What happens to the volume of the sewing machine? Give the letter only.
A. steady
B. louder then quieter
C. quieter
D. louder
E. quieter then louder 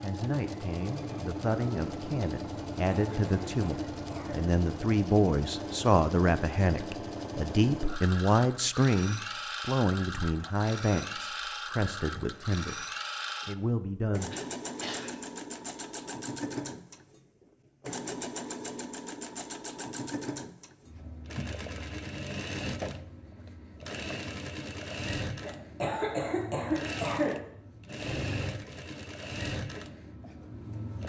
A.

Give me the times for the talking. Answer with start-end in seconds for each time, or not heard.
0.0-12.8, 13.4-14.3.